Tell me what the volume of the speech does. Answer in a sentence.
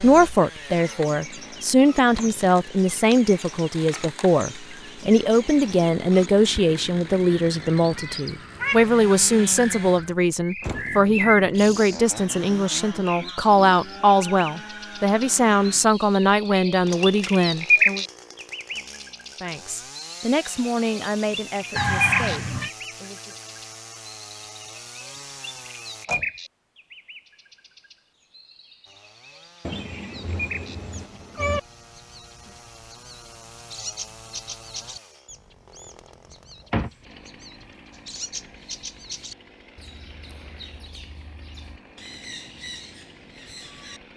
The loudness of the speech goes down.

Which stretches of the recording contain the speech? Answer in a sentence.
The speech can be heard from 0.0 to 18.1 s and from 19.4 to 23.4 s.